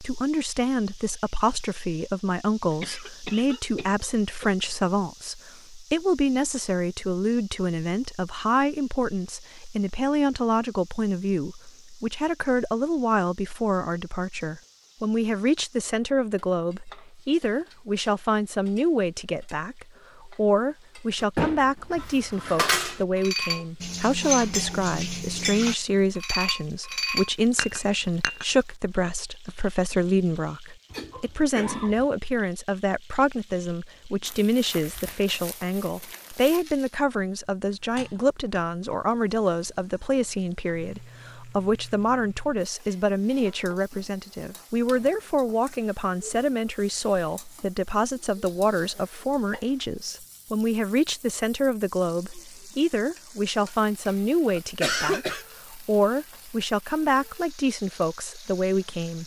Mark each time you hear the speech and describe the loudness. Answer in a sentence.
You can hear the speech from 0.0 to 59.2 s, at a steady volume.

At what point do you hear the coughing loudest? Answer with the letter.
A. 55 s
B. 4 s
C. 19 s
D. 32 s
A.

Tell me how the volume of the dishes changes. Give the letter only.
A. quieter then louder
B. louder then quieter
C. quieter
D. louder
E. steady
E.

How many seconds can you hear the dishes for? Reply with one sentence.
You can hear the dishes for 7 seconds altogether.